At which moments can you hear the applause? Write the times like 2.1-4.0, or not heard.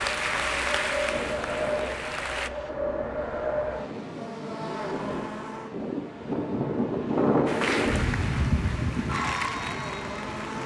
0.0-2.5, 7.5-10.6.